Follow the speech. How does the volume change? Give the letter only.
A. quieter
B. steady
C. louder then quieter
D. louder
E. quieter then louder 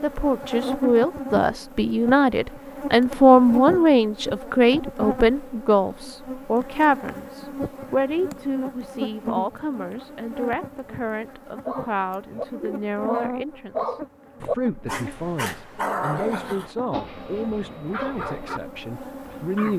A.